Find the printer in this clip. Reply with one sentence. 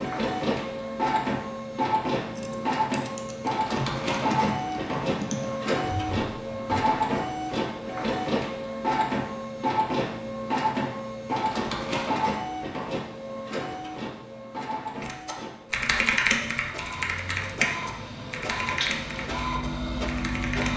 The printer can be heard from 0.0 to 20.7 s.